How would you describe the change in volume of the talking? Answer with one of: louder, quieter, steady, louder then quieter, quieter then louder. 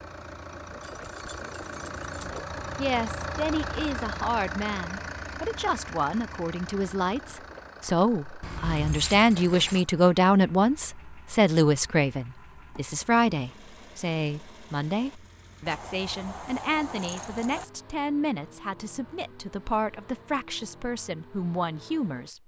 louder then quieter.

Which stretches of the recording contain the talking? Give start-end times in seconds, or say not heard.
2.1-22.4.